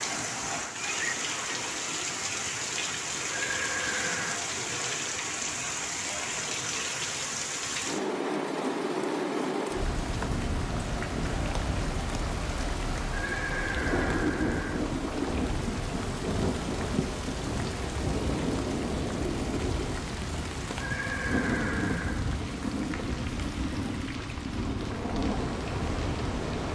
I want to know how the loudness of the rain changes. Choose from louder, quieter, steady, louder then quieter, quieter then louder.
steady.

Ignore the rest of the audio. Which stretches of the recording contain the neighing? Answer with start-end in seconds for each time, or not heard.
3.3-4.4, 13.1-14.8, 20.8-22.3.